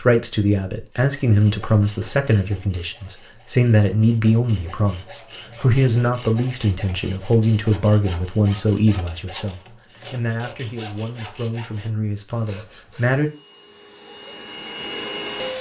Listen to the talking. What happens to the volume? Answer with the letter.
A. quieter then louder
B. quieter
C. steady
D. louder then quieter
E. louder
B.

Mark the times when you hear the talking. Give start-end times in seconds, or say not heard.
0.0-13.3.